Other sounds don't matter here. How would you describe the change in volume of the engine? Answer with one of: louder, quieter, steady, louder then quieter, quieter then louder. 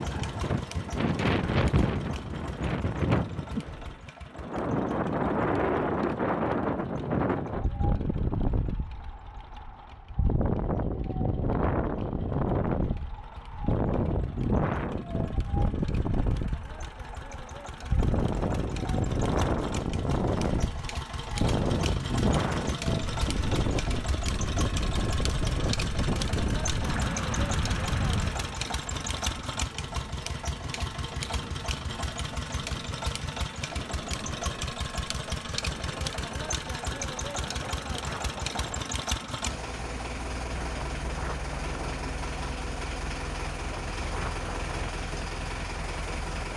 louder.